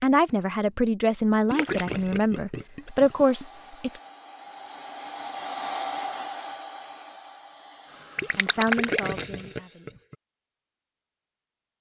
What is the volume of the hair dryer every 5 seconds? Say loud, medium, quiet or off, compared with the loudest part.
medium, loud, off.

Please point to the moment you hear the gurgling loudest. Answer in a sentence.
The volume of the gurgling peaks at 9 seconds.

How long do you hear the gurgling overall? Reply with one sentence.
You can hear the gurgling for 4 seconds altogether.